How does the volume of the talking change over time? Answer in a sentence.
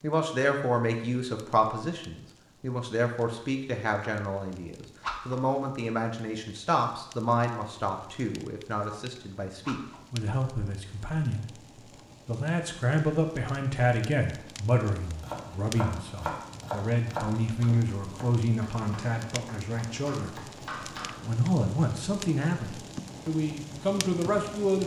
The volume of the talking stays about the same.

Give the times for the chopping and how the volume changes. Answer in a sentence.
You can hear the chopping from 15.0 to 21.1 s, getting quieter then louder.